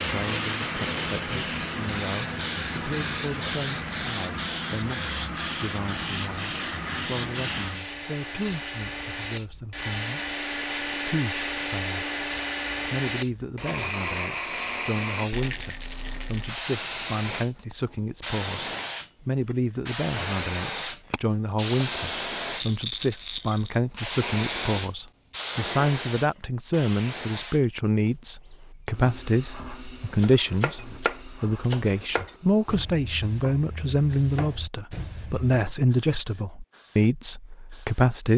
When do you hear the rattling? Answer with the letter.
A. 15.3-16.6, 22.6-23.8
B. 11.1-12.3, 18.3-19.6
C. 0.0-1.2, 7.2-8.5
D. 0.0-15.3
A.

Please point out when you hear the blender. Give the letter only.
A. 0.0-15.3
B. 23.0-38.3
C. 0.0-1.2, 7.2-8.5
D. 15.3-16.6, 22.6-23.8
A.